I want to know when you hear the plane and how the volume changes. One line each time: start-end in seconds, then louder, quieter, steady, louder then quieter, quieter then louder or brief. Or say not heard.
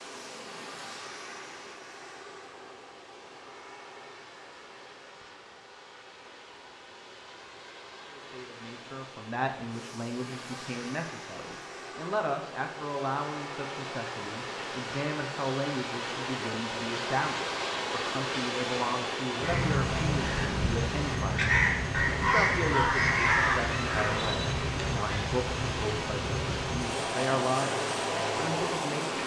0.0-29.2 louder.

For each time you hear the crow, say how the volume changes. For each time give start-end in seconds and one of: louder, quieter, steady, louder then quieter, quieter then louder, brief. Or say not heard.
19.4-25.3 louder then quieter.